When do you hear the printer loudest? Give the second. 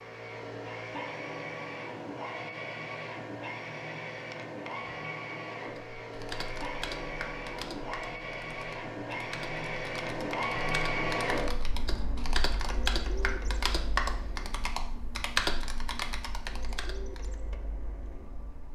11 s.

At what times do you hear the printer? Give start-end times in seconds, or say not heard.
0.0-18.6.